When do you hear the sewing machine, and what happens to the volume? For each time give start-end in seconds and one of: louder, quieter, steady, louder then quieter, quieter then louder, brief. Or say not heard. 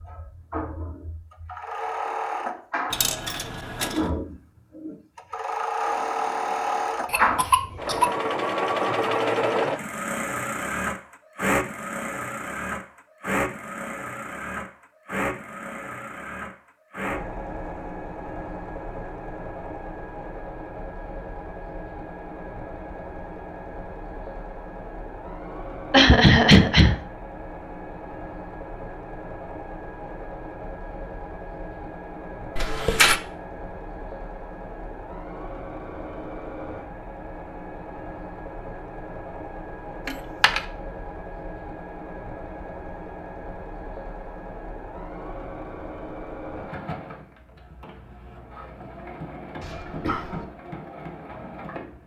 0.0-52.0 quieter.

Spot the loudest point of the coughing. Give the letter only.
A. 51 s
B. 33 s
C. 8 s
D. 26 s
D.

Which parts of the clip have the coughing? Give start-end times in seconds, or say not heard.
7.1-8.1, 25.9-26.9, 49.6-50.5.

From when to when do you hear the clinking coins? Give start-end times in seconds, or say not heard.
2.9-4.0, 32.5-33.2, 40.0-40.6.